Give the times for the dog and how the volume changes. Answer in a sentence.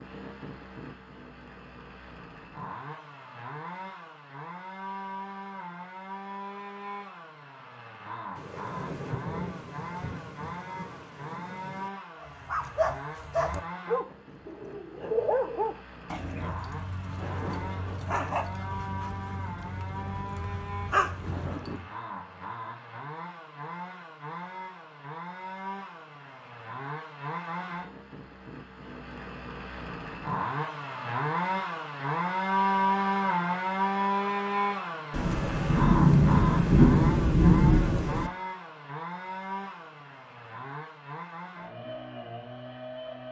The dog can be heard from 12.2 to 21.9 s, getting quieter then louder.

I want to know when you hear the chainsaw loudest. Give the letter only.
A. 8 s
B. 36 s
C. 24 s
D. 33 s
D.